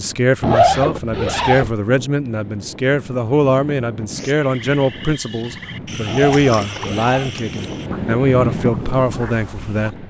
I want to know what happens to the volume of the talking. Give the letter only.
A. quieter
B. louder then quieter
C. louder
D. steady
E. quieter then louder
D.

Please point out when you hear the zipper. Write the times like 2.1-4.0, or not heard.
0.4-1.7, 6.0-7.3.